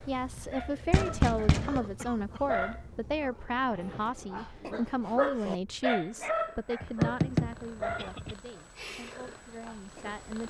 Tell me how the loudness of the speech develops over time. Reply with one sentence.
The volume of the speech goes down.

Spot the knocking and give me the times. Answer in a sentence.
You can hear the knocking from 0.9 to 1.8 s and from 6.8 to 8.3 s.